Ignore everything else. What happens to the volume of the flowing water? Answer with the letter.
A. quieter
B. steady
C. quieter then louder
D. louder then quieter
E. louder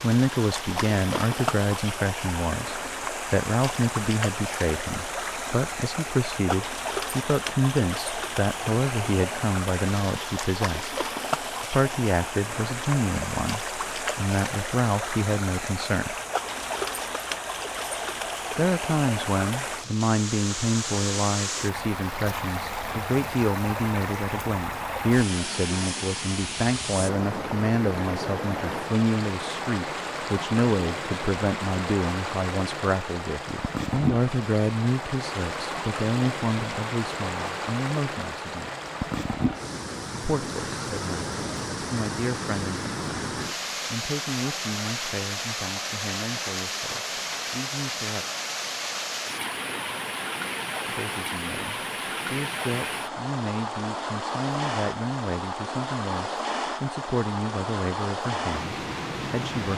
B.